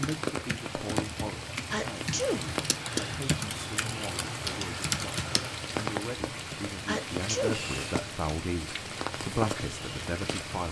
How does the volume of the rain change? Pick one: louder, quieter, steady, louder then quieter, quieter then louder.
steady.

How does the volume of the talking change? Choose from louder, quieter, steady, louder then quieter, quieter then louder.
louder.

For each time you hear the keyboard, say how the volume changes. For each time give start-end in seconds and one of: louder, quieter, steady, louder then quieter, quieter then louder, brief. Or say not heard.
0.0-5.5 louder.